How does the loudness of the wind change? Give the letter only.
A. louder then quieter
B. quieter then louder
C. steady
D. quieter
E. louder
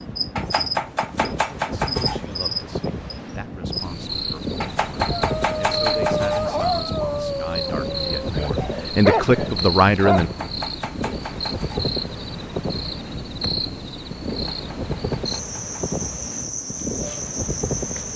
C.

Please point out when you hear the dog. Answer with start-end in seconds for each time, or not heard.
5.2-10.4.